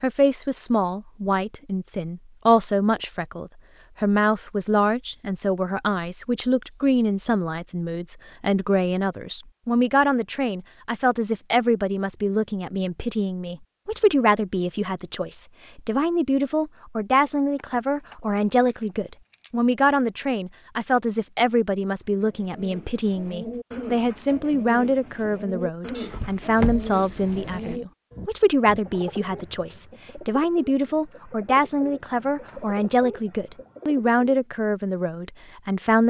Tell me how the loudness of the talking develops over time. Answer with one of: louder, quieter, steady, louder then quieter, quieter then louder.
steady.